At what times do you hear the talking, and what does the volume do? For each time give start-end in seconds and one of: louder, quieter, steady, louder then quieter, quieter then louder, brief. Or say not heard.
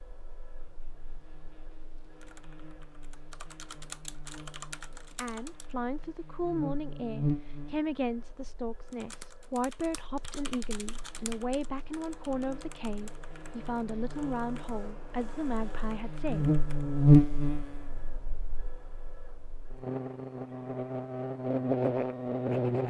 5.2-16.5 steady.